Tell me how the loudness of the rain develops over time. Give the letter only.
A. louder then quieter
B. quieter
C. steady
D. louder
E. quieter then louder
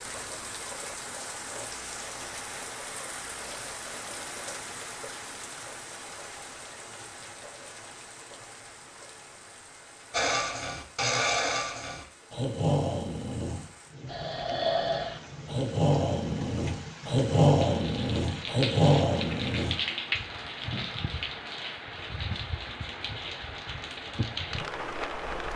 E.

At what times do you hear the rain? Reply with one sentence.
The rain can be heard from 0.0 to 25.5 s.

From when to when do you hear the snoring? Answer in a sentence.
The snoring can be heard from 10.1 to 19.8 s.